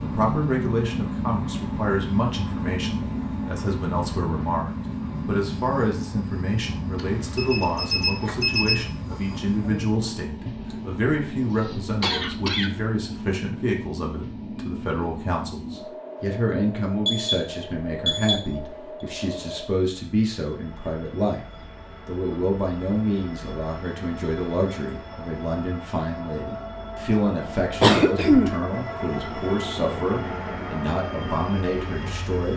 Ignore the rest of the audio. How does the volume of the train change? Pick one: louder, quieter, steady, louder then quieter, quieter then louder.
quieter then louder.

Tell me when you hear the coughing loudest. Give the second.
28 s.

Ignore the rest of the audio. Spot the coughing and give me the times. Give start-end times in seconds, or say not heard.
10.7-12.8, 27.8-28.6.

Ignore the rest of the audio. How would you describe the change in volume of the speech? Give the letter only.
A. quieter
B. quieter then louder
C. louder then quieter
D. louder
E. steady
E.